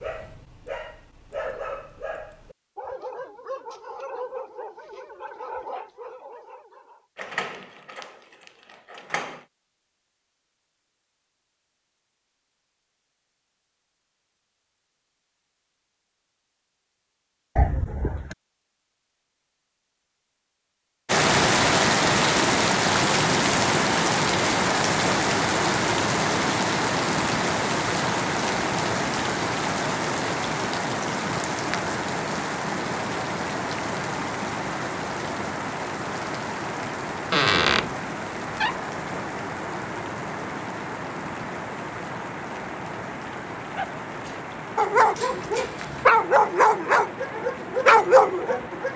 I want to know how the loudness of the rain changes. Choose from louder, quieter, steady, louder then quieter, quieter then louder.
quieter.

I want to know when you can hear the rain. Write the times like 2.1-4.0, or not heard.
21.1-48.9.